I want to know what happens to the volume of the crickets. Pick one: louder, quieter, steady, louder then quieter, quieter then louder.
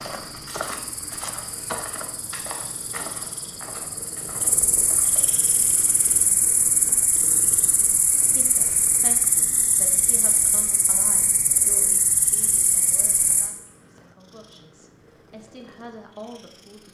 louder.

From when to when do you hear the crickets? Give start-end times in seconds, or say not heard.
0.1-13.5.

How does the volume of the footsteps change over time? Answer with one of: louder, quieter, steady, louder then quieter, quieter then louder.
quieter.